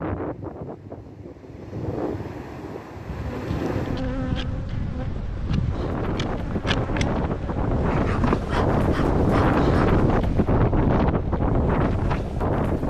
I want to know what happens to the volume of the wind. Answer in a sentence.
The loudness of the wind goes up.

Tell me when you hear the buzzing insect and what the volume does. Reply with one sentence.
You can hear the buzzing insect from 3.0 to 10.1 s, at a steady volume.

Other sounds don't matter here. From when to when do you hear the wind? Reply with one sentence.
The wind can be heard from 0.0 to 12.8 s.